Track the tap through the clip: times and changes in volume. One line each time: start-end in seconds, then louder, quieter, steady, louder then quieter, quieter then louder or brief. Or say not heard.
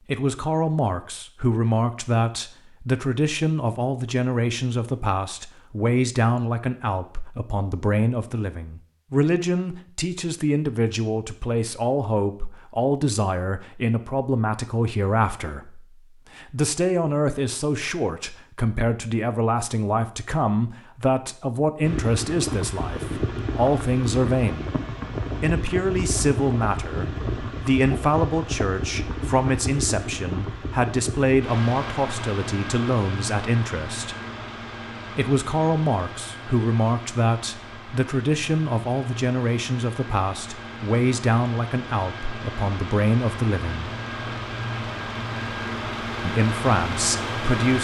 not heard.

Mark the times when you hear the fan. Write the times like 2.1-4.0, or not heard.
21.8-47.8.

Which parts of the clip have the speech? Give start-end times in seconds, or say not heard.
0.1-24.7, 25.4-34.1, 35.1-43.9, 46.2-47.8.